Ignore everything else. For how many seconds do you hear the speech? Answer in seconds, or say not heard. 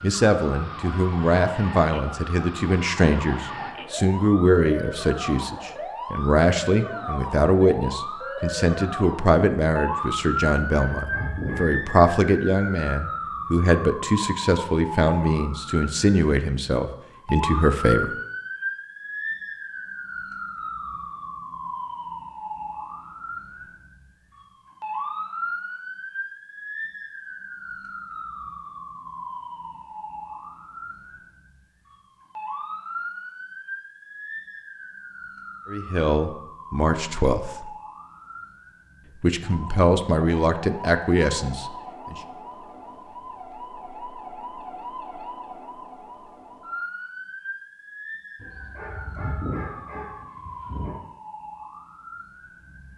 23 s.